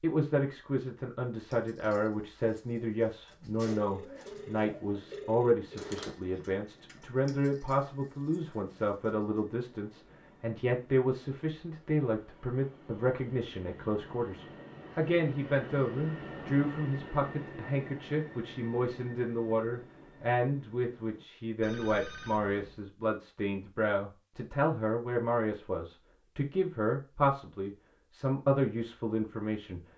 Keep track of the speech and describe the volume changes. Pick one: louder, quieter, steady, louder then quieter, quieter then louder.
steady.